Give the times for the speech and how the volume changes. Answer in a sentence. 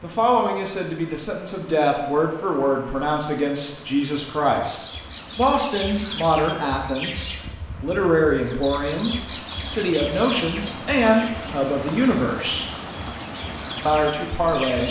You can hear the speech from 0.0 to 12.7 s, at a steady volume; and briefly from 13.8 to 14.8 s.